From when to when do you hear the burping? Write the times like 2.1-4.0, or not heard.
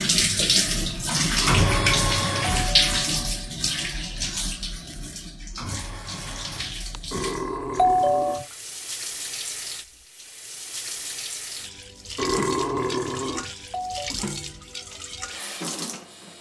1.4-2.0, 7.1-8.6, 12.2-13.5.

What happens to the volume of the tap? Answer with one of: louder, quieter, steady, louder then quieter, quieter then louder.
quieter.